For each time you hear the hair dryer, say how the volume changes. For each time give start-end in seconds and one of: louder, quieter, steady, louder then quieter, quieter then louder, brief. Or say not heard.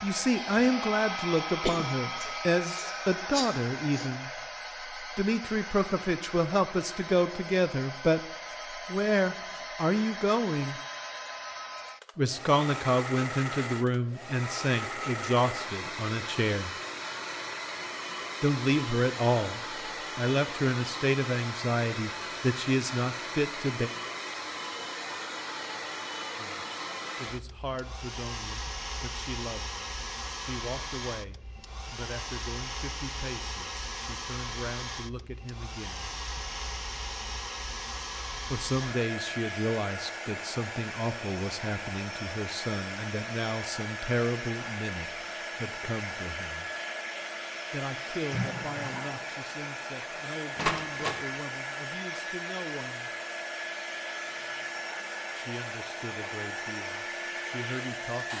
0.0-58.3 steady.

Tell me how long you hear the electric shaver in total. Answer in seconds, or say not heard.
not heard.